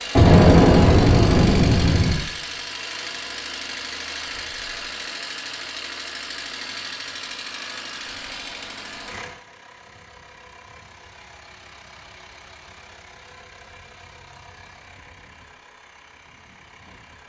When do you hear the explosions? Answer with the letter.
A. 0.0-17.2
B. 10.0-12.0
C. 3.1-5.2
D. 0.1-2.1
D.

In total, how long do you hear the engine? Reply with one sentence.
You can hear the engine for 17 seconds altogether.